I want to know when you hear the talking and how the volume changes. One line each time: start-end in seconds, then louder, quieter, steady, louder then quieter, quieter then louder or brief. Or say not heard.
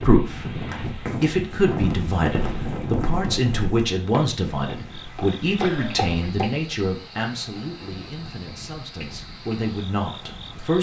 0.0-10.7 quieter.